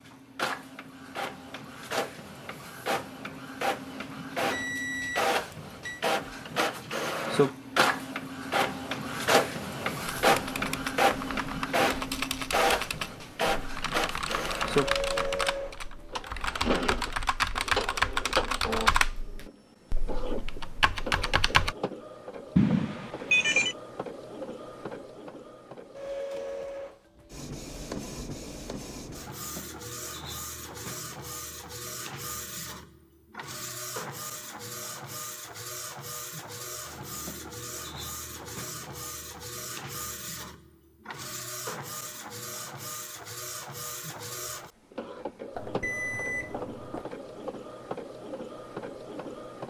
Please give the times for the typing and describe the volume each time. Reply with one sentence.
You can hear the typing from 10.1 to 21.8 s, getting louder then quieter.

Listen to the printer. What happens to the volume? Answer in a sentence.
The volume of the printer goes down.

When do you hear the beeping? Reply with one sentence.
You can hear the beeping from 4.5 to 6.0 s, from 22.6 to 23.8 s and from 45.5 to 47.0 s.